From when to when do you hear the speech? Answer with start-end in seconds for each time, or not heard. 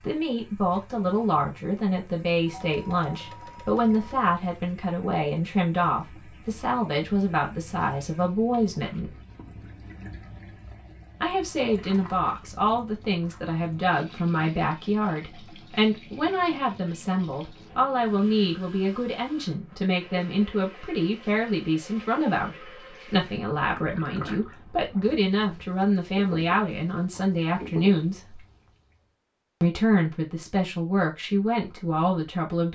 0.0-9.2, 11.2-28.4, 29.6-32.6.